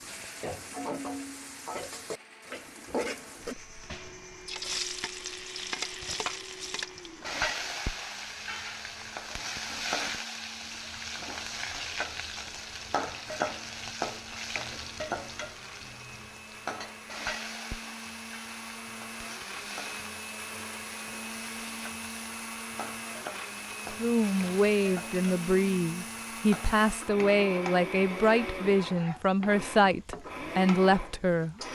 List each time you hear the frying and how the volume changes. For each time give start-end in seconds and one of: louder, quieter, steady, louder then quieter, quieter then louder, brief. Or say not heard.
0.0-31.6 quieter.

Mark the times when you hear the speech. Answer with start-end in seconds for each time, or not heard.
23.9-31.6.